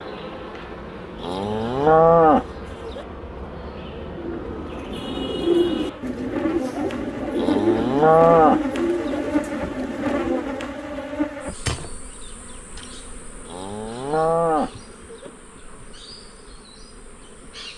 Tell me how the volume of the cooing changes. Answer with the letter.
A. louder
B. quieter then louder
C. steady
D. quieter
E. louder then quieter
D.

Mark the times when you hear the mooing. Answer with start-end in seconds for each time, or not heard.
1.2-3.0, 7.3-9.2, 13.4-15.3.